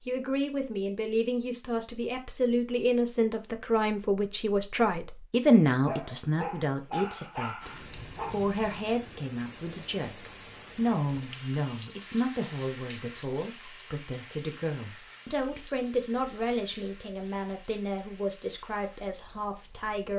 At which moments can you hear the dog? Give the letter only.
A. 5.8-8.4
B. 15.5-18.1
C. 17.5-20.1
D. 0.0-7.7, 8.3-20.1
A.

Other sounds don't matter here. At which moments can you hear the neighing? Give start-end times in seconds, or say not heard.
not heard.